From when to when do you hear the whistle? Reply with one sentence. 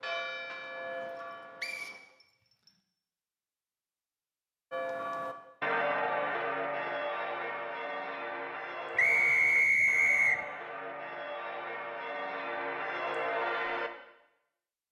The whistle can be heard from 1.6 to 2.7 s and from 8.9 to 10.4 s.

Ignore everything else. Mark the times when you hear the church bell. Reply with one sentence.
You can hear the church bell from 0.0 to 2.0 s and from 4.7 to 13.9 s.